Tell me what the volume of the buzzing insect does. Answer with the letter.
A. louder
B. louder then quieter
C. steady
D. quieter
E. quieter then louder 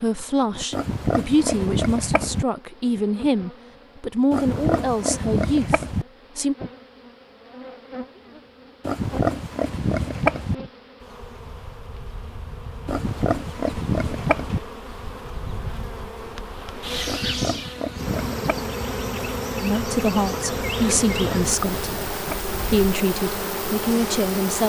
A.